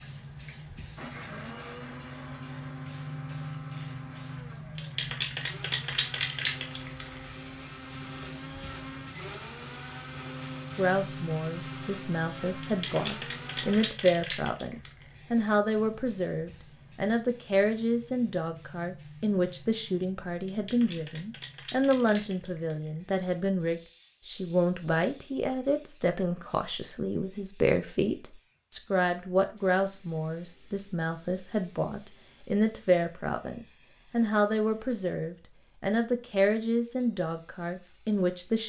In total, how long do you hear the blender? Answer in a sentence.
The blender can be heard for 14 seconds in total.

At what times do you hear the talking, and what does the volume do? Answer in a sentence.
You can hear the talking from 10.8 to 38.6 s, at a steady volume.